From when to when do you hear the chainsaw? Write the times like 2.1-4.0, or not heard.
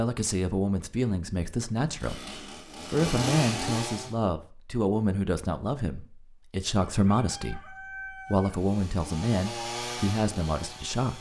1.9-4.2, 8.2-11.1.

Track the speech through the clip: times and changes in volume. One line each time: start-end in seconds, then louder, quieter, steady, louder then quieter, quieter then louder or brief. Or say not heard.
0.0-11.1 steady.